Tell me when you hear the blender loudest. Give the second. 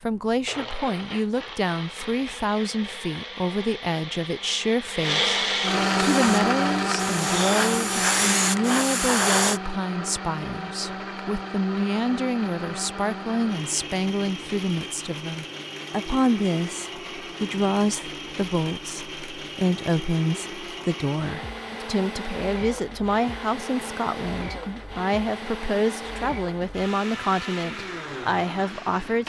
6 s.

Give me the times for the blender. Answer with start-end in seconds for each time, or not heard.
0.0-29.2.